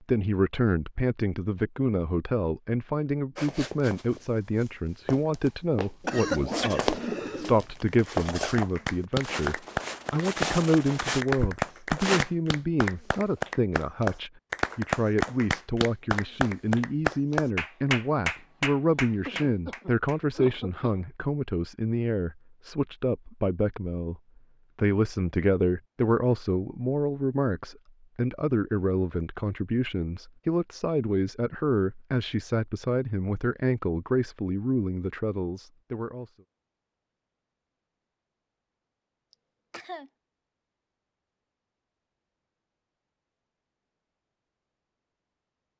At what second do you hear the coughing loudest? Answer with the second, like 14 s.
6 s.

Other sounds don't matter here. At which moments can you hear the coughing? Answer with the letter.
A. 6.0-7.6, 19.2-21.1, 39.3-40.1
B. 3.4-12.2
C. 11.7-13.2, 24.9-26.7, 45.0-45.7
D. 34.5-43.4
A.